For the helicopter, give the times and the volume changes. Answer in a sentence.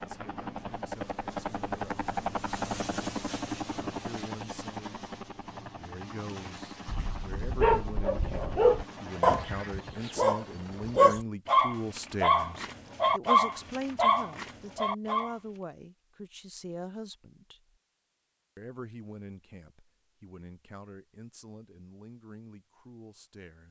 You can hear the helicopter from 0.0 to 11.2 s, getting quieter.